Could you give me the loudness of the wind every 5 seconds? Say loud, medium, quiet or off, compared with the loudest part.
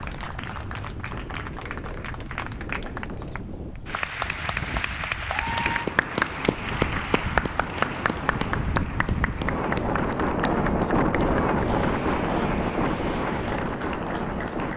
quiet, medium, loud.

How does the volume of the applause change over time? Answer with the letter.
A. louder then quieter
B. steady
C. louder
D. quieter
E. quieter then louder
A.